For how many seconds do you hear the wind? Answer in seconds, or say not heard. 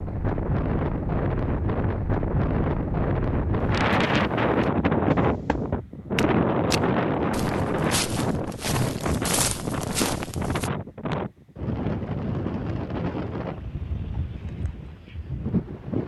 16 s.